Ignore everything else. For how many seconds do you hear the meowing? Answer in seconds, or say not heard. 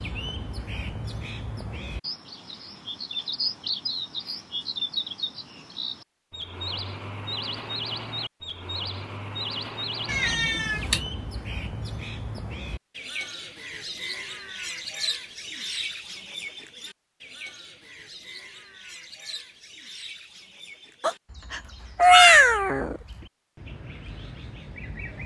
3 s.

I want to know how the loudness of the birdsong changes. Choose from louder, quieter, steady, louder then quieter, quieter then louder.
quieter.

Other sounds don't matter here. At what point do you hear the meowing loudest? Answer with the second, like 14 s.
22 s.